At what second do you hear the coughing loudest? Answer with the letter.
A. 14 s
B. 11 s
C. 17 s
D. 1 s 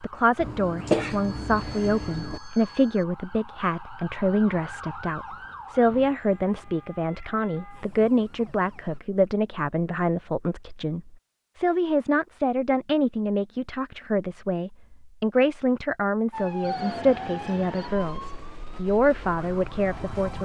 D.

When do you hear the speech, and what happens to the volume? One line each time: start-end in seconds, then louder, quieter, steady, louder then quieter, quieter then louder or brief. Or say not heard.
0.0-20.3 steady.